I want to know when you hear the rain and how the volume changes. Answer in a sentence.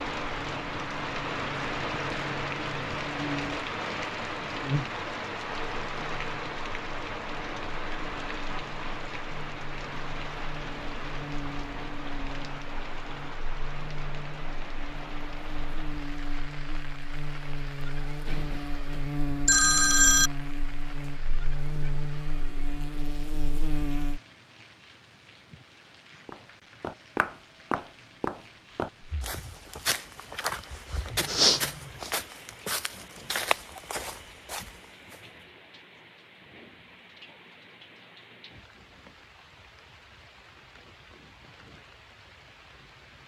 The rain can be heard from 0.0 to 43.2 s, getting quieter.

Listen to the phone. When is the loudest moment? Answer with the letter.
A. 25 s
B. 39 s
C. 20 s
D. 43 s
C.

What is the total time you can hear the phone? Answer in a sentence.
The phone can be heard for 2 seconds in total.